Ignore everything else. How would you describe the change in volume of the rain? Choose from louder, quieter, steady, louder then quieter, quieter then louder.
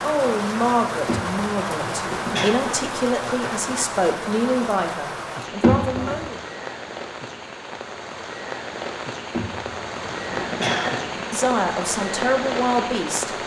quieter then louder.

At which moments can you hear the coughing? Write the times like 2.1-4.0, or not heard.
1.1-2.5, 5.6-6.3, 9.3-11.4.